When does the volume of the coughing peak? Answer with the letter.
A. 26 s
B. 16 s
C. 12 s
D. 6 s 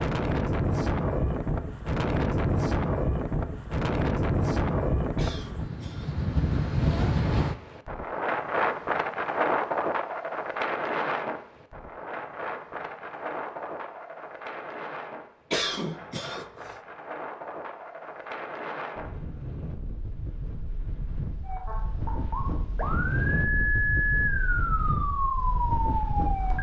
B.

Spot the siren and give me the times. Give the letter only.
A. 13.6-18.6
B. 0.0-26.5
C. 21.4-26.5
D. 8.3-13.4
C.